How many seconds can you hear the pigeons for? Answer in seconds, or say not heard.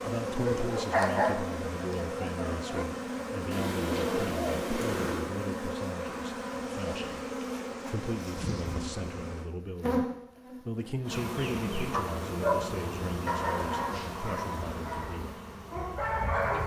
2 s.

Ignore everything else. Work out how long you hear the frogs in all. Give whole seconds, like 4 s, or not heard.
not heard.